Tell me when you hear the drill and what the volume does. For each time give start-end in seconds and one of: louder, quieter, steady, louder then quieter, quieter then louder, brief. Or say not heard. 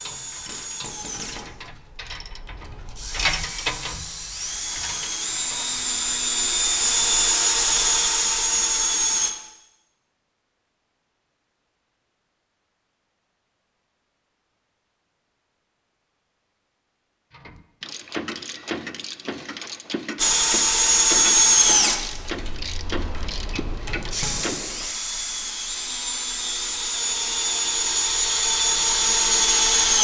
0.0-9.3 louder
20.1-30.0 quieter then louder.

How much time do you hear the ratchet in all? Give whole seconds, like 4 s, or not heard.
14 s.